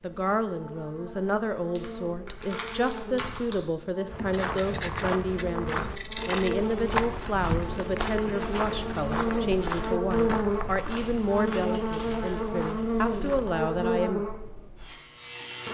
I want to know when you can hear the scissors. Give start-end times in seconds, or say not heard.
4.2-6.5.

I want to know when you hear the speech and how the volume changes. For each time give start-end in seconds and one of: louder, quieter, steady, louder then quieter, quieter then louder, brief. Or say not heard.
0.0-14.2 steady.